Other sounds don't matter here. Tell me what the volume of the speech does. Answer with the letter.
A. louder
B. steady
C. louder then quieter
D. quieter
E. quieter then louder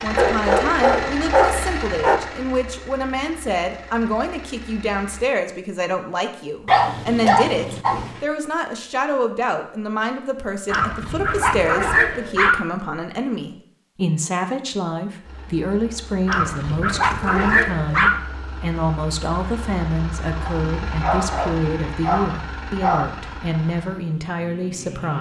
B.